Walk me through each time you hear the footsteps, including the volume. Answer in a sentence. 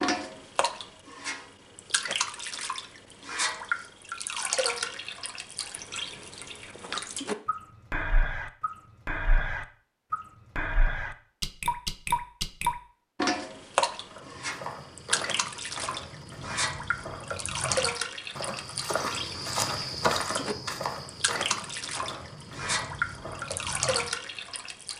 The footsteps can be heard from 14.1 to 24.1 s, getting louder then quieter.